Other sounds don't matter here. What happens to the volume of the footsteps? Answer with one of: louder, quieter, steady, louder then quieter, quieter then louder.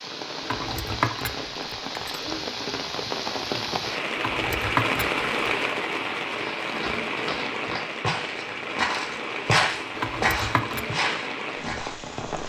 louder then quieter.